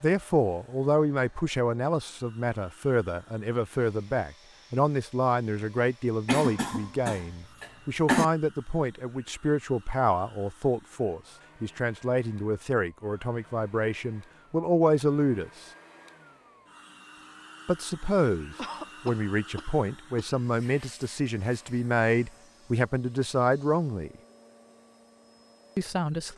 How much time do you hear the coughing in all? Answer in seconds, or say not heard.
4 s.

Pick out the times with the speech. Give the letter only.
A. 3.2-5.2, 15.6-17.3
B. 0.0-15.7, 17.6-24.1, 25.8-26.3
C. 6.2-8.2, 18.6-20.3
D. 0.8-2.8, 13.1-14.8
B.